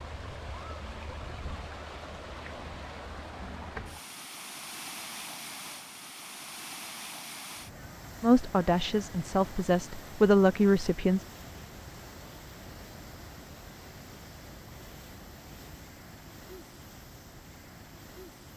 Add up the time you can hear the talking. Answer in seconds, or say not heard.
3 s.